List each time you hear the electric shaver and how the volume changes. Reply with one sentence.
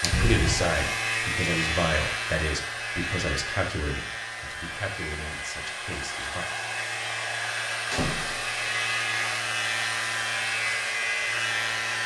The electric shaver can be heard from 0.0 to 12.0 s, getting quieter then louder.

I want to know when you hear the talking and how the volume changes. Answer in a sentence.
The talking can be heard from 0.0 to 6.5 s, getting quieter.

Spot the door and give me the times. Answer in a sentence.
You can hear the door from 0.1 to 0.7 s and from 7.9 to 8.7 s.